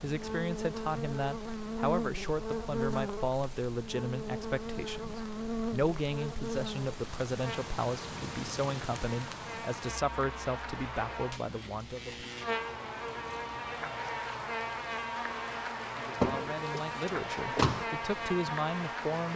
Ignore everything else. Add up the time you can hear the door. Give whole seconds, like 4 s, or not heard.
2 s.